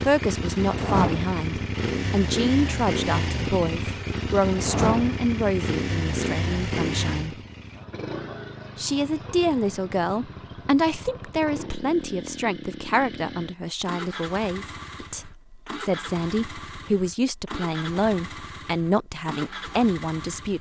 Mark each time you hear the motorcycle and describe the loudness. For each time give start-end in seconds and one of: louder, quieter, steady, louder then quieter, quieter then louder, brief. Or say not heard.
0.0-20.5 quieter.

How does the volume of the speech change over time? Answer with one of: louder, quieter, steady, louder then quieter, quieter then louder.
steady.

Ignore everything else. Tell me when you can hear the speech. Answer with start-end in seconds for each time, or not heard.
0.0-7.3, 8.8-20.5.